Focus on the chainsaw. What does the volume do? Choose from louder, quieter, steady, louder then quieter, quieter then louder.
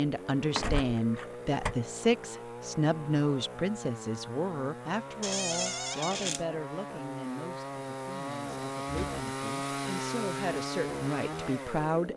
louder.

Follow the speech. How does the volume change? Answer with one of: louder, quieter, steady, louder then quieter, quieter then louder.
quieter then louder.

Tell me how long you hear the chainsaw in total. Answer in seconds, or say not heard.
12 s.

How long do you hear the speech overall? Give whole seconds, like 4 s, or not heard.
12 s.